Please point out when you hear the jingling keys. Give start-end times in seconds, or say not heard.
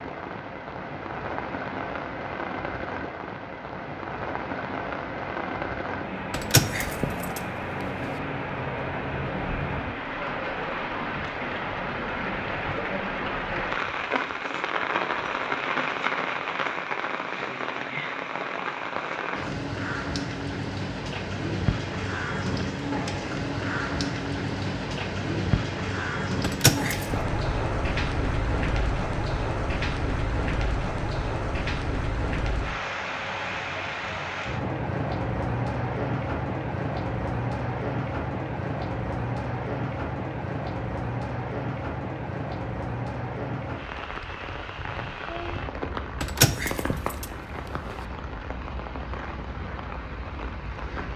6.3-7.4, 26.4-27.2, 46.2-47.2.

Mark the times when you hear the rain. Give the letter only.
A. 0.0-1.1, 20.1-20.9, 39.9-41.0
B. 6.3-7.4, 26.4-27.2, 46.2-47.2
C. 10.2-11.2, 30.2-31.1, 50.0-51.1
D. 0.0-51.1
D.